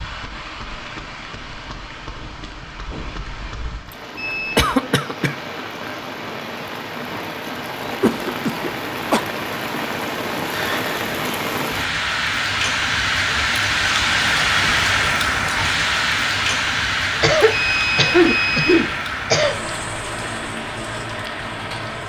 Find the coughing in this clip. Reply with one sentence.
You can hear the coughing from 4.5 to 5.3 s, from 8.0 to 9.2 s and from 17.2 to 19.6 s.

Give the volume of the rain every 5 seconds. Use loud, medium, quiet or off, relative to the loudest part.
quiet, medium, loud, loud, medium.